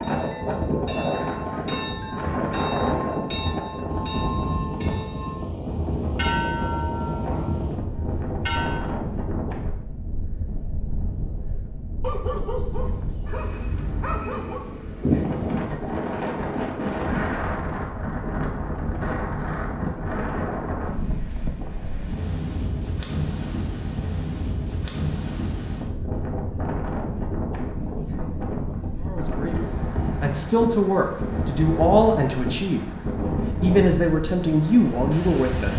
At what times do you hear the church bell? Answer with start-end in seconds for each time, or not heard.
0.0-9.0.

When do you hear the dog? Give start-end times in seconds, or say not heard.
12.0-14.6.